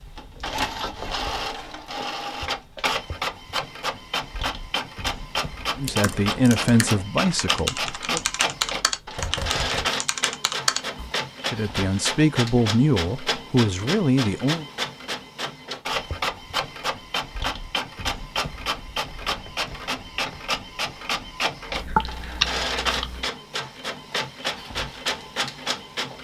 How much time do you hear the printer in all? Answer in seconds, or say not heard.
26 s.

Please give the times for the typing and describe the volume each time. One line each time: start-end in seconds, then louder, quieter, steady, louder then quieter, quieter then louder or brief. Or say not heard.
5.8-11.1 louder
21.7-23.2 brief.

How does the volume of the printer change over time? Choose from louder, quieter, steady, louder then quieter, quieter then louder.
steady.